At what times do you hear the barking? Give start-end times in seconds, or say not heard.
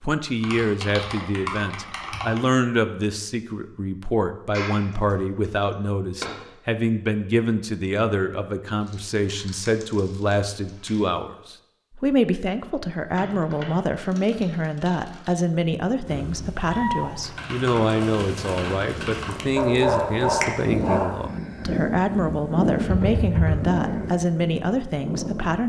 19.6-21.2.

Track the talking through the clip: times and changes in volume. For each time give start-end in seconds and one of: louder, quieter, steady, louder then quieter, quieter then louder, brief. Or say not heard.
0.0-25.6 steady.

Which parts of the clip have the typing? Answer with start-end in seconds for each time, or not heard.
0.4-2.4, 4.5-6.3, 8.8-11.1, 13.2-15.3, 17.2-19.4, 22.9-23.8.